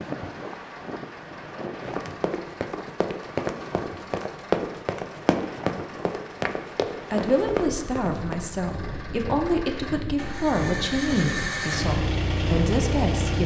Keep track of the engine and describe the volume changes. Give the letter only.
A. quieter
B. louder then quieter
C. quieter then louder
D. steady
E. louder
E.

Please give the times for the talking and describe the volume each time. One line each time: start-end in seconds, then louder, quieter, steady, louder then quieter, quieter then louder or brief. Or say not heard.
7.1-13.4 steady.